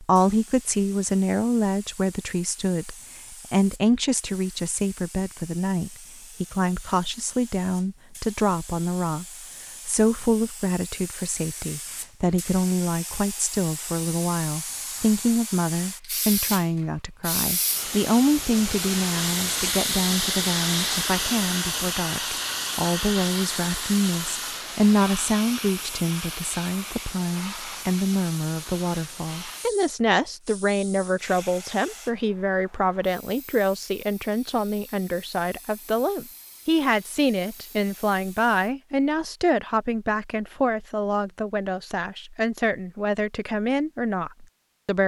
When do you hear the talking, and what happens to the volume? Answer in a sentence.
The talking can be heard from 0.0 to 9.2 s, at a steady volume; and from 9.8 to 45.0 s, at a steady volume.